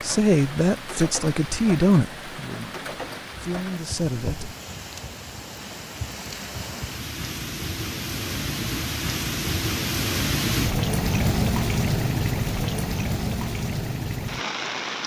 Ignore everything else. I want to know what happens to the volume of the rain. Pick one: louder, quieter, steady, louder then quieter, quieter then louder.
louder.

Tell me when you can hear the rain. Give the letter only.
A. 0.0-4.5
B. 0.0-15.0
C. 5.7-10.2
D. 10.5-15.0
B.